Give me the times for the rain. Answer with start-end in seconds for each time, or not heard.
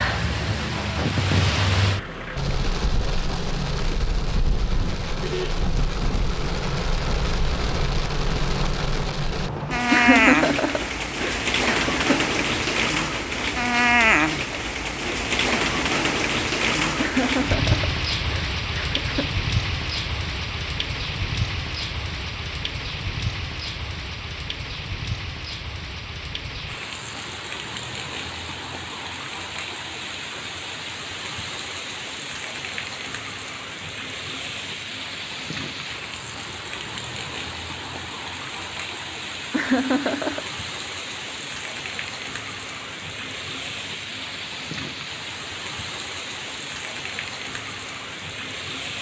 0.0-48.9.